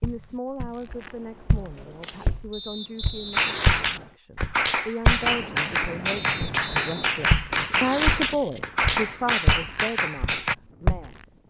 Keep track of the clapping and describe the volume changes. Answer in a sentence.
The volume of the clapping stays about the same.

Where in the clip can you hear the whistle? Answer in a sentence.
The whistle can be heard from 2.5 to 4.2 s and from 6.2 to 7.2 s.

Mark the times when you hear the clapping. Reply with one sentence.
You can hear the clapping from 3.3 to 10.6 s.